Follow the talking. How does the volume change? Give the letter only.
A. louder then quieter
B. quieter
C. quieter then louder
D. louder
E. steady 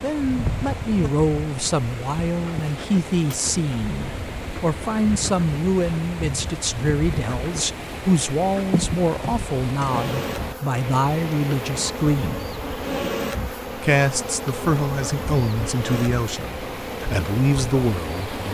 E.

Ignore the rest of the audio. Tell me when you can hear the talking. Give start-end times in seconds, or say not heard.
0.0-12.4, 13.8-18.4.